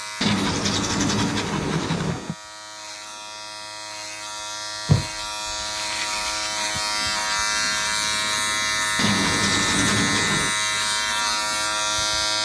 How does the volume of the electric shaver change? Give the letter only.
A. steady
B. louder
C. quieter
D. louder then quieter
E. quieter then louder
B.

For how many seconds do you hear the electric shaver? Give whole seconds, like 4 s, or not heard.
12 s.